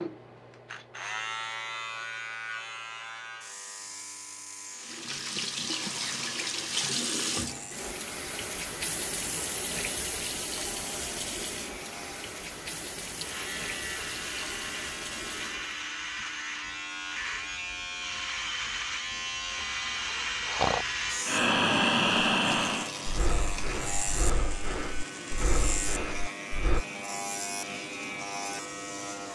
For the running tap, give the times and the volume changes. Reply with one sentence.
The running tap can be heard from 4.7 to 15.9 s, getting quieter.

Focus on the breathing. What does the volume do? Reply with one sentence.
The volume of the breathing goes down.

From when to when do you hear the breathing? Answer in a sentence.
The breathing can be heard from 20.1 to 26.9 s.